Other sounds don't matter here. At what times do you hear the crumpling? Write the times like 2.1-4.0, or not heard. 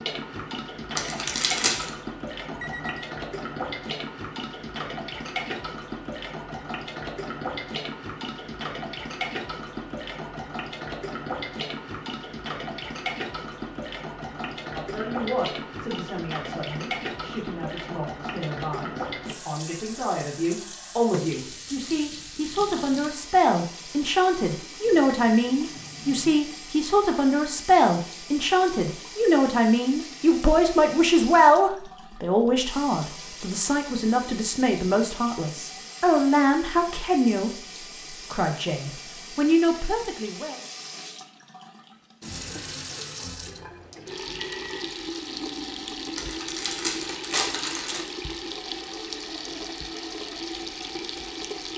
0.9-1.9, 46.1-48.0.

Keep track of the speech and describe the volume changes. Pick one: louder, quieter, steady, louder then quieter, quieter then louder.
louder.